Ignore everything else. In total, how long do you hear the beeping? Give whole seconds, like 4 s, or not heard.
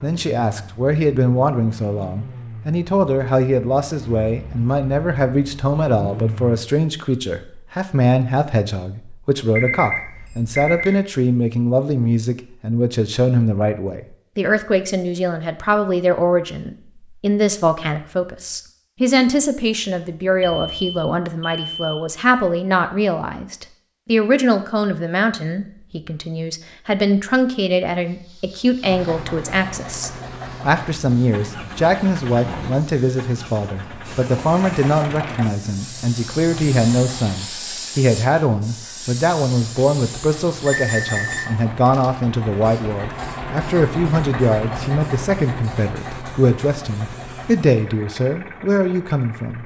4 s.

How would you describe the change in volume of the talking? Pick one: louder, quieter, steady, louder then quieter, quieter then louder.
steady.